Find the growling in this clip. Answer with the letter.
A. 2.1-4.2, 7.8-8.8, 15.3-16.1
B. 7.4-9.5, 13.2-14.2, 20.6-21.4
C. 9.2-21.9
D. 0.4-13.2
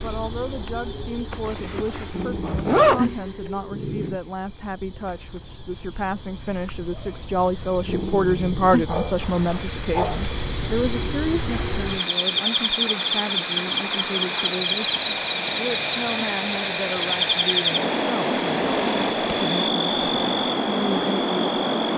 A.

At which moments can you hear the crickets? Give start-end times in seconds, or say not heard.
0.0-21.9.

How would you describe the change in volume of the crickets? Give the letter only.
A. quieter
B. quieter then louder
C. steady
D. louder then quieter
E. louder
E.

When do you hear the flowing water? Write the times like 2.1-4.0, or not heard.
9.2-21.9.